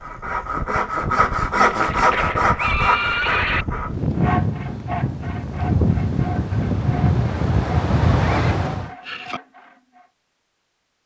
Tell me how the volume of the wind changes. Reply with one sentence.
The volume of the wind goes up.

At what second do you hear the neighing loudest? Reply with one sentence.
The volume of the neighing peaks at 3 seconds.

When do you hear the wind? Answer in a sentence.
The wind can be heard from 0.0 to 8.9 s.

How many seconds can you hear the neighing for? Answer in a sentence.
You can hear the neighing for 3 seconds altogether.